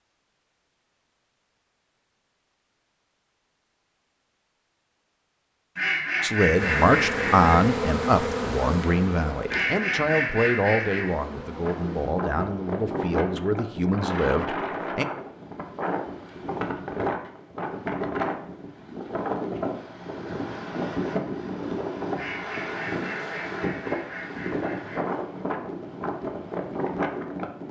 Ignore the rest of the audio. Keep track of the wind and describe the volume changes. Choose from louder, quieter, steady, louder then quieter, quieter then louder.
steady.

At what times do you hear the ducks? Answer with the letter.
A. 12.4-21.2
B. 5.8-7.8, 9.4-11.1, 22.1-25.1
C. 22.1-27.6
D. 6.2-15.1
B.